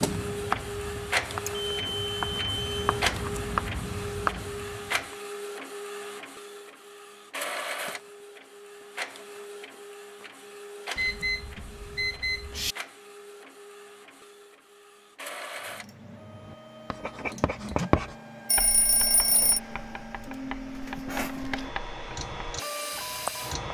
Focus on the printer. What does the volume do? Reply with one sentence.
The volume of the printer goes down, then up.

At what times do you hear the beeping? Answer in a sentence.
You can hear the beeping from 1.4 to 3.0 s, from 10.9 to 12.8 s and from 18.4 to 19.6 s.